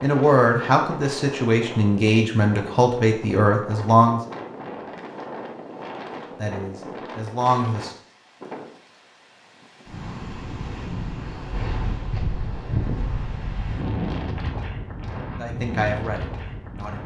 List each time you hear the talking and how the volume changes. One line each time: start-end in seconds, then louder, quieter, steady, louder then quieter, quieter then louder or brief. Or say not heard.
0.0-4.2 steady
6.3-7.9 brief
15.3-17.0 brief.